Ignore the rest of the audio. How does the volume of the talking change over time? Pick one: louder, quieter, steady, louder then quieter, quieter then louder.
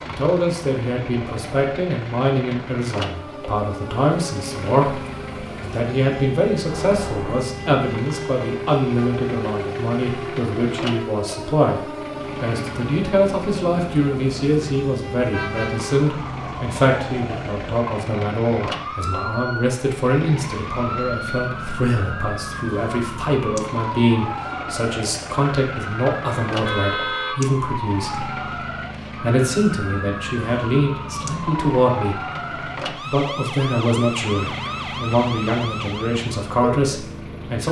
steady.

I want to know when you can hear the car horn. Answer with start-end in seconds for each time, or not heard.
6.7-7.5, 15.3-16.0, 26.6-27.4.